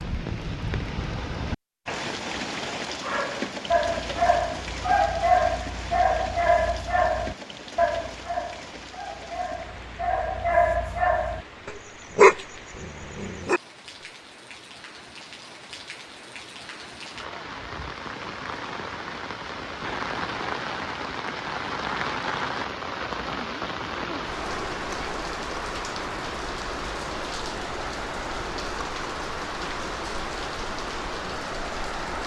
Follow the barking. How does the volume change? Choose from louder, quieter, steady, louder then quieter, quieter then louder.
quieter then louder.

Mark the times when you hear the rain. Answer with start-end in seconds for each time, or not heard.
0.0-32.2.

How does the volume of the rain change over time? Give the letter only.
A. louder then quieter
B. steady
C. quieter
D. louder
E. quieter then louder
E.